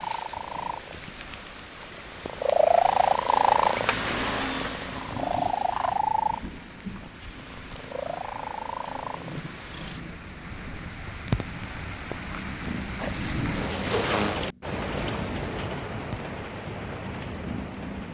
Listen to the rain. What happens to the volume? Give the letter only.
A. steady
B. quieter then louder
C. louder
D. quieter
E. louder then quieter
C.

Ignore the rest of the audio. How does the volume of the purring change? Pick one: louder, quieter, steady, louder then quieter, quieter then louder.
quieter.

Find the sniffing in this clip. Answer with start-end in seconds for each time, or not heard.
4.8-5.7, 13.7-14.4.